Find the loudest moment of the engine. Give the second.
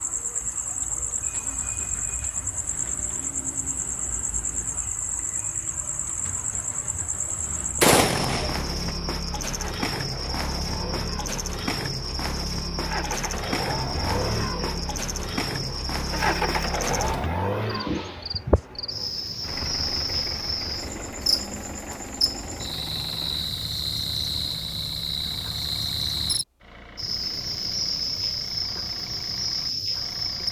17 s.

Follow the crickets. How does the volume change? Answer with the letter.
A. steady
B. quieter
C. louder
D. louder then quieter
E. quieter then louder
A.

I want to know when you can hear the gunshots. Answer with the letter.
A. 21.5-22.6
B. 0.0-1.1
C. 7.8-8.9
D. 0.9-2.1
C.